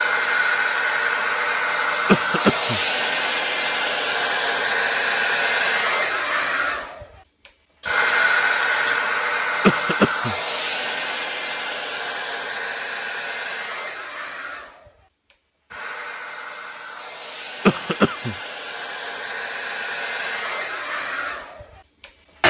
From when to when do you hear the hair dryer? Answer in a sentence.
The hair dryer can be heard from 0.0 to 22.4 s.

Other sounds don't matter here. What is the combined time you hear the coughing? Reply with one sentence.
The coughing can be heard for 2 seconds in total.